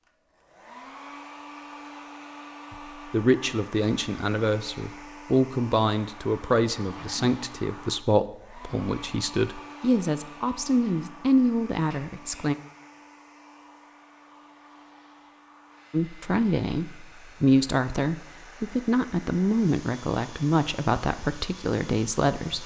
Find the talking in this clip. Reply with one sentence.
The talking can be heard from 2.7 to 12.6 s and from 15.9 to 22.6 s.